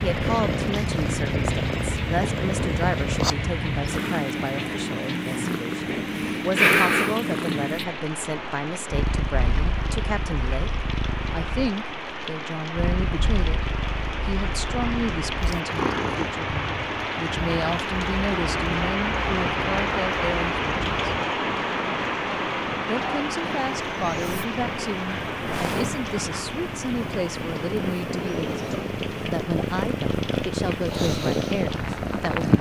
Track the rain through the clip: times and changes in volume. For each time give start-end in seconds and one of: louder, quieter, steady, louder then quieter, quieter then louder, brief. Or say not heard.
0.0-32.5 louder then quieter.